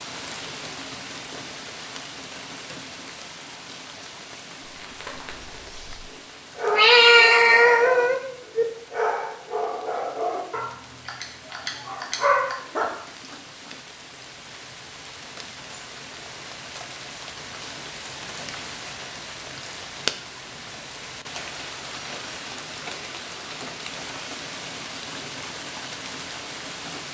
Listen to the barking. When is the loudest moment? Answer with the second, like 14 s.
12 s.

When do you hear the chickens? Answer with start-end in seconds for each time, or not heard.
not heard.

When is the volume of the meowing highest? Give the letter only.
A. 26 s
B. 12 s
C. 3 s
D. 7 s
D.